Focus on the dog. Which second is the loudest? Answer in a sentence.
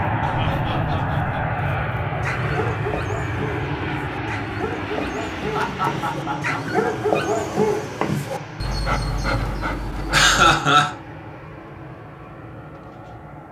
The volume of the dog peaks at 7 seconds.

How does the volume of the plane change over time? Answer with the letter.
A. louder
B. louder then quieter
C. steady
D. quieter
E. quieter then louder
D.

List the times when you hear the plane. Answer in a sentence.
The plane can be heard from 0.0 to 13.4 s.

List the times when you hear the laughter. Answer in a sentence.
The laughter can be heard from 0.2 to 1.4 s, from 5.5 to 6.6 s and from 10.1 to 10.9 s.